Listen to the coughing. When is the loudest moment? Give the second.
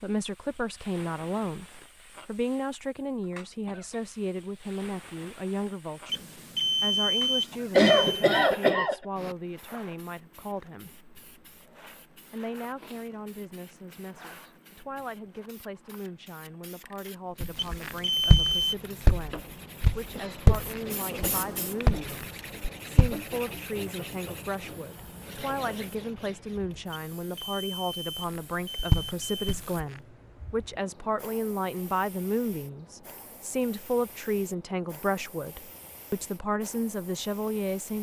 8 s.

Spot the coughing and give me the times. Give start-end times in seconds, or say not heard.
7.7-8.9, 20.1-21.2.